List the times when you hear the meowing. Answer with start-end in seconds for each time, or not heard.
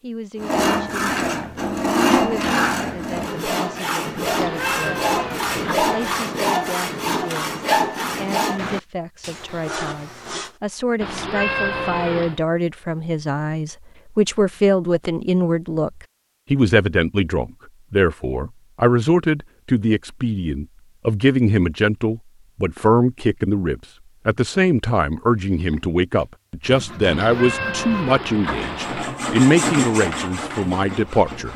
4.2-6.2, 11.0-12.4, 27.0-29.1.